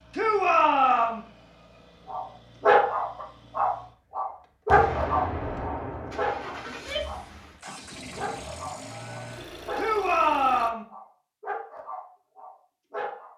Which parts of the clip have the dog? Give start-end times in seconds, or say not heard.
2.0-10.0, 10.9-13.3.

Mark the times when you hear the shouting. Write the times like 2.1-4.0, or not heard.
0.1-1.2, 6.7-7.2, 9.8-10.8.